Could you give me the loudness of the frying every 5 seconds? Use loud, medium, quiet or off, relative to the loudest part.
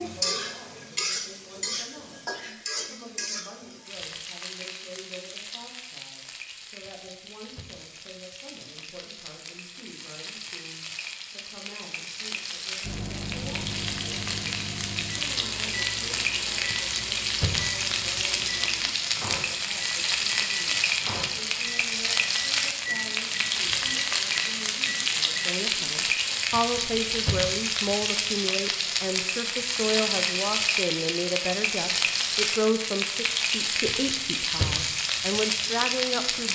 medium, quiet, medium, loud, loud, loud, loud, loud.